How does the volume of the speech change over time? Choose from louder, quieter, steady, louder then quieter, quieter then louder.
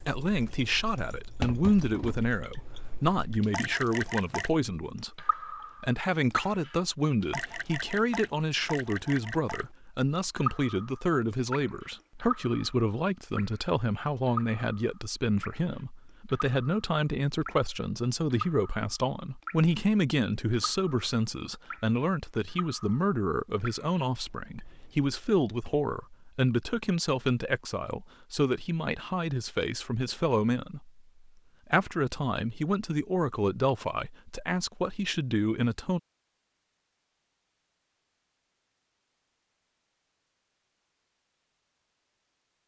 steady.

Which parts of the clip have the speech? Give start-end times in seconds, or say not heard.
0.0-31.0, 31.7-36.0.